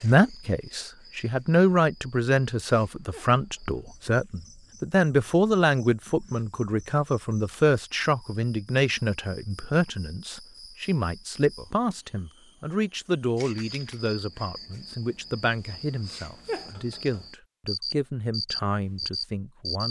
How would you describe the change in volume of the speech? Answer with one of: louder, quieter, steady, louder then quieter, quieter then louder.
quieter.